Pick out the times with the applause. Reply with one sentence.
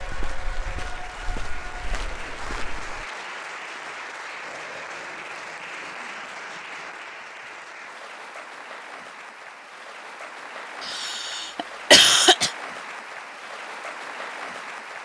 The applause can be heard from 0.0 to 15.0 s.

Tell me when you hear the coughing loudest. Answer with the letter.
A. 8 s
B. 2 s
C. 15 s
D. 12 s
D.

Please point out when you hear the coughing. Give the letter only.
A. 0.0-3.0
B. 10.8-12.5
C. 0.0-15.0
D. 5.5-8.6
B.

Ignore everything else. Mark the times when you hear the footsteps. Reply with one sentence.
You can hear the footsteps from 0.0 to 3.0 s.